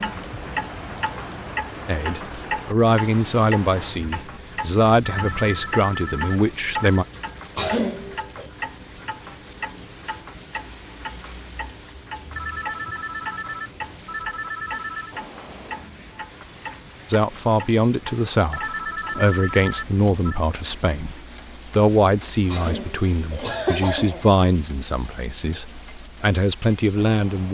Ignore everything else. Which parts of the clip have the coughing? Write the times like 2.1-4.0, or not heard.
7.5-8.5, 22.5-24.2.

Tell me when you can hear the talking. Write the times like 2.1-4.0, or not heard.
1.9-7.0, 17.1-27.4.